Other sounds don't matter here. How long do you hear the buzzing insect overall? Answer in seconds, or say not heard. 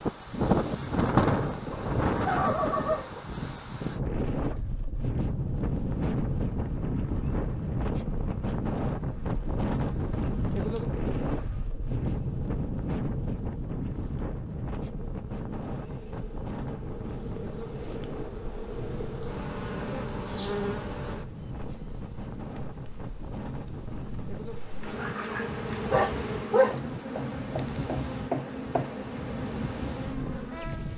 25 s.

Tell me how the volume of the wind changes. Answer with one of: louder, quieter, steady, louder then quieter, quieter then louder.
quieter.